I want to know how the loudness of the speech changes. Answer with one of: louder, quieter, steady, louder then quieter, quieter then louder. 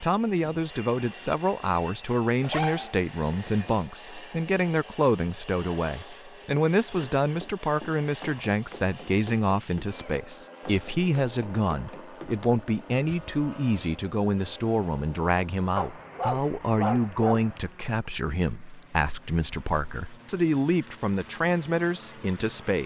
steady.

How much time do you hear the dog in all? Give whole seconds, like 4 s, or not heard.
3 s.